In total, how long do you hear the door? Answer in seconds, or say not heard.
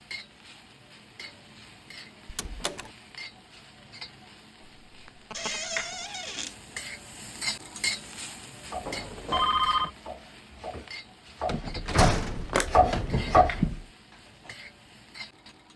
4 s.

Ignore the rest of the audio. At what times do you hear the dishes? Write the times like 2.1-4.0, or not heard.
not heard.